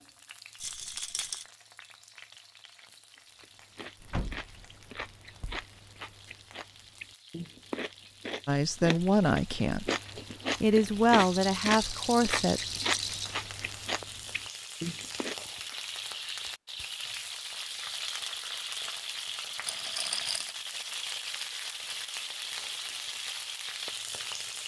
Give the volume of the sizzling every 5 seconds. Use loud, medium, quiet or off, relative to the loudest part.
quiet, quiet, medium, loud, loud.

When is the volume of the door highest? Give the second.
4 s.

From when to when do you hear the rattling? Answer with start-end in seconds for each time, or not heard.
0.6-1.5, 11.2-13.4, 19.6-20.6.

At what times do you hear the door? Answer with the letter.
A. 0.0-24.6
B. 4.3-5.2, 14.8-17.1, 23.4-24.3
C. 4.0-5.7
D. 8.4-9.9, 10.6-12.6
C.